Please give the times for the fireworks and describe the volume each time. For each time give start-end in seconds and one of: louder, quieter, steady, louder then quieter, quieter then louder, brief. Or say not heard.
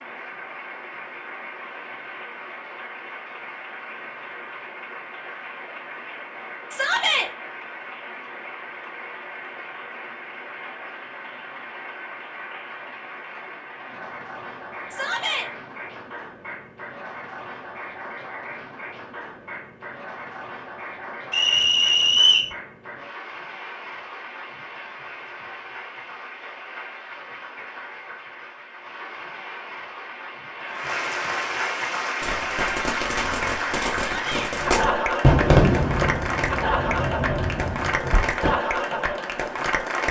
32.2-38.5 louder then quieter.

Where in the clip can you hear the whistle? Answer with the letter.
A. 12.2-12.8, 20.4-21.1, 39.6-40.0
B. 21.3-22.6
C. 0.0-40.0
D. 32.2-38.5
B.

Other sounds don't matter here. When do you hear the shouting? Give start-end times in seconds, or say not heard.
6.7-7.3, 14.9-15.5, 34.0-34.5.